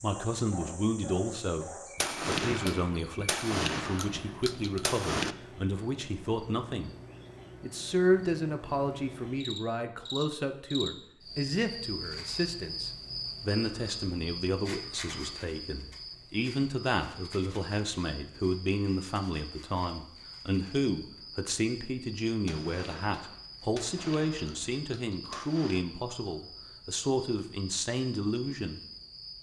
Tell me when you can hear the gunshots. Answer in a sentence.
You can hear the gunshots from 1.9 to 5.3 s and from 22.4 to 25.8 s.